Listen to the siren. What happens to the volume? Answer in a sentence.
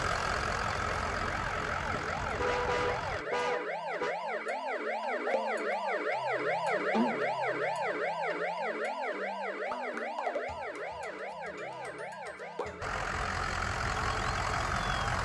The volume of the siren goes up, then down.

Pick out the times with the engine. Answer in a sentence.
You can hear the engine from 0.0 to 3.2 s and from 12.8 to 15.1 s.